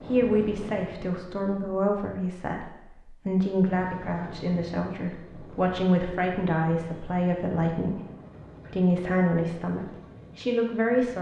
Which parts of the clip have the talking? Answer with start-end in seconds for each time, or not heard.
0.1-8.0, 8.7-11.1.